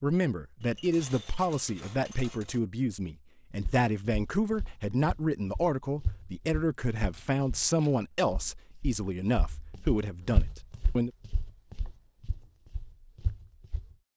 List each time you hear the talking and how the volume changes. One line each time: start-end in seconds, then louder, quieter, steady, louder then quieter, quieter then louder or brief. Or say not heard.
0.0-11.1 steady.